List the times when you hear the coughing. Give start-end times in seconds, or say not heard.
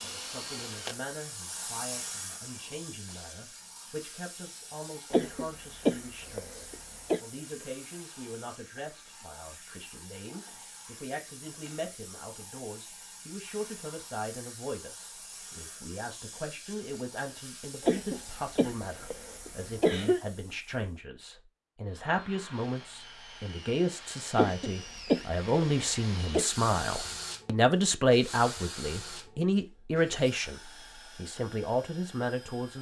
5.1-7.2, 17.8-20.2, 24.4-26.5.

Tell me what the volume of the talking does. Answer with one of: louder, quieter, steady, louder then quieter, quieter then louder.
louder.